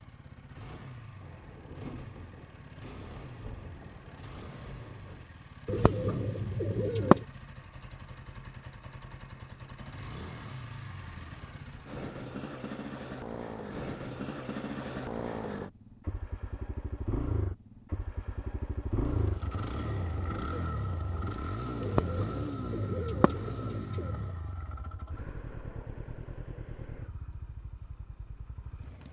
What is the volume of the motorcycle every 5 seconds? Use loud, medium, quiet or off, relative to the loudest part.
medium, medium, loud, loud, loud, medium.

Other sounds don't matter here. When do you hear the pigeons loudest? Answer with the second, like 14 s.
7 s.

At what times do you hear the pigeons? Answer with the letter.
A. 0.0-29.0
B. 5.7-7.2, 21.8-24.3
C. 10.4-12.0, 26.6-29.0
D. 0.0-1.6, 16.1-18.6
B.